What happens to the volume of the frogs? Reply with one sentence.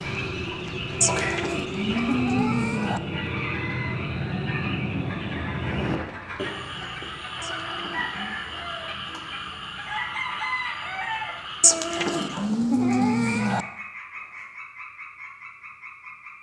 The volume of the frogs goes down.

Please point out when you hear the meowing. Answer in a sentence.
The meowing can be heard from 1.0 to 3.0 s, from 7.4 to 8.3 s and from 11.6 to 13.7 s.